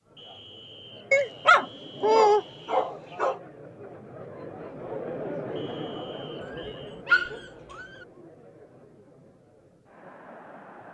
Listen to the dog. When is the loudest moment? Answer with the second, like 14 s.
2 s.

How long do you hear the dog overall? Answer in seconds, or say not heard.
4 s.